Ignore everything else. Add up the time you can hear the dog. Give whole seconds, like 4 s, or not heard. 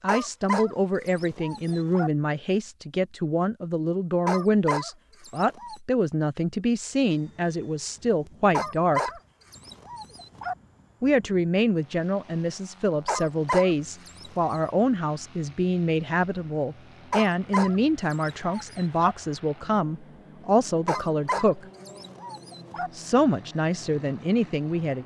11 s.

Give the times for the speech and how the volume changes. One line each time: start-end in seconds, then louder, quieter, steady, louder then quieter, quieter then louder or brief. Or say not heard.
0.0-9.1 steady
11.0-21.6 steady
22.9-25.0 brief.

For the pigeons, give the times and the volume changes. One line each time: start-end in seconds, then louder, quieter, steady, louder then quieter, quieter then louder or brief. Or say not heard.
not heard.